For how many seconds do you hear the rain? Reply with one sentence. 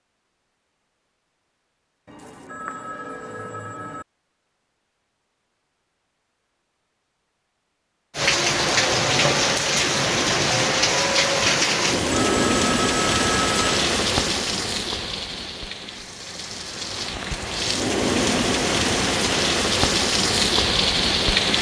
You can hear the rain for 13 seconds altogether.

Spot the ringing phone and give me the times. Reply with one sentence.
You can hear the ringing phone from 2.0 to 4.0 s and from 12.1 to 13.8 s.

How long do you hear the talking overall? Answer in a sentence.
The talking can't be heard in this clip.